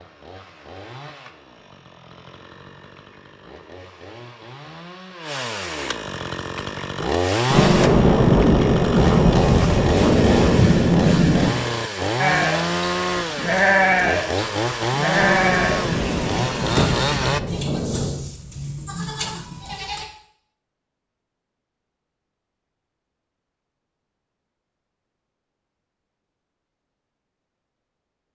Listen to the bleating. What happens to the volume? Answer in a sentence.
The loudness of the bleating goes down.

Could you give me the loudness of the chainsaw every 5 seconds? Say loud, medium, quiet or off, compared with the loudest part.
quiet, loud, loud, loud, off, off.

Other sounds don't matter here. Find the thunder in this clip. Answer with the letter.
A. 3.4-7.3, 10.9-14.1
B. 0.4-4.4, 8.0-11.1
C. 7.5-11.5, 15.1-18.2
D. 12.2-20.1
C.